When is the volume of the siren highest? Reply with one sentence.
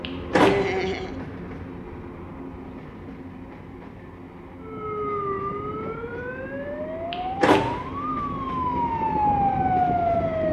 The loudest moment of the siren is at 10 seconds.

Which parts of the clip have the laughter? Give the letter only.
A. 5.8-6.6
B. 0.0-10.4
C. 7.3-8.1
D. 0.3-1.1
D.